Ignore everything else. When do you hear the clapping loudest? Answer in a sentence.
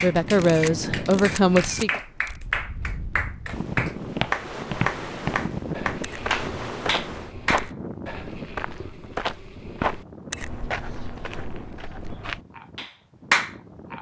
The volume of the clapping peaks at 13 seconds.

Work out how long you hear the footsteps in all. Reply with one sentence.
The footsteps can be heard for 9 seconds in total.